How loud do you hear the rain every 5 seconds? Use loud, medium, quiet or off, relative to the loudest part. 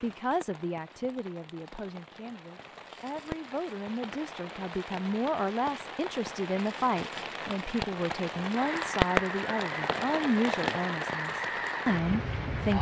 medium, loud, loud.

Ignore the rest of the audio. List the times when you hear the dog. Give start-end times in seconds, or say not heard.
not heard.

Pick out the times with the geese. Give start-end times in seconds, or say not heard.
8.6-12.7.